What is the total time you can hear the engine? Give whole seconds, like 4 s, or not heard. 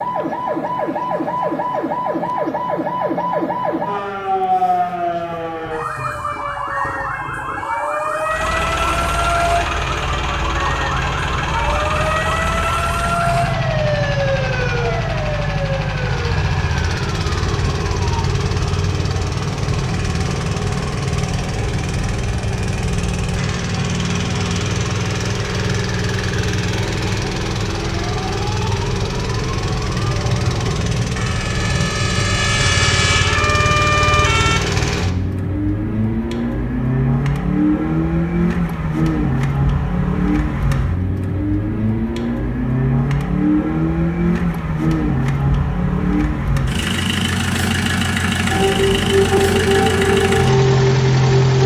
43 s.